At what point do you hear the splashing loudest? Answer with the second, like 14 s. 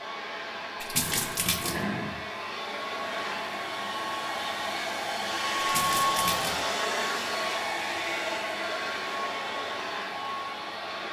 1 s.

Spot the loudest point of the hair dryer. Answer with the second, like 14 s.
6 s.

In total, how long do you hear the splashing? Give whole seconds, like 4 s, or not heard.
2 s.